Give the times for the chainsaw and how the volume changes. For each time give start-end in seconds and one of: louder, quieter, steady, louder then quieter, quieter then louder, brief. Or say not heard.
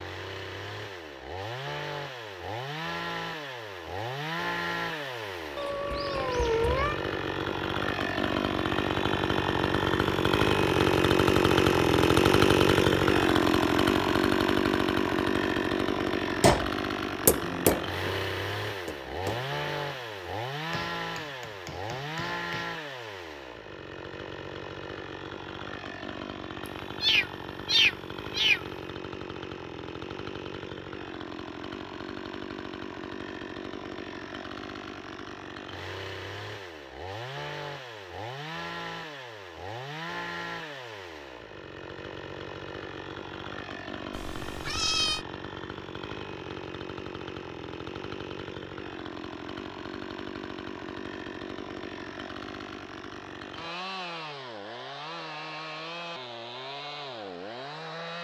0.0-58.2 quieter.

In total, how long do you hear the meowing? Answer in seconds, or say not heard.
4 s.